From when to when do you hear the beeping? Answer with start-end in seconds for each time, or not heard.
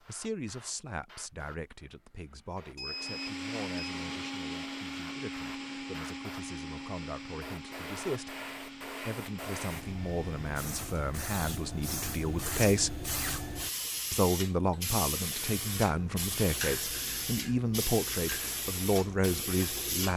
2.8-4.0.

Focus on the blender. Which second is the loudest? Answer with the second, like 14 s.
4 s.